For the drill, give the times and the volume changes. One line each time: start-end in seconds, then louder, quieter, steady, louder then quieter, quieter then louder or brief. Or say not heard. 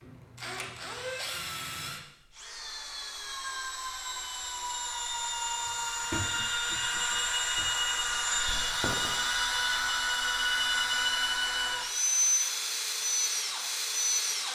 0.0-14.5 louder.